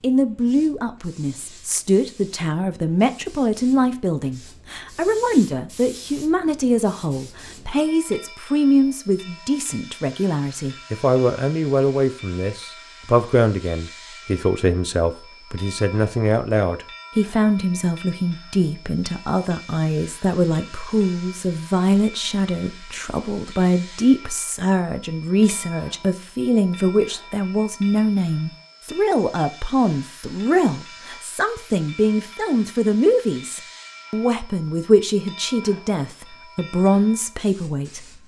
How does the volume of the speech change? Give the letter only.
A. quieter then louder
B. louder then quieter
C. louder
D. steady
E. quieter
D.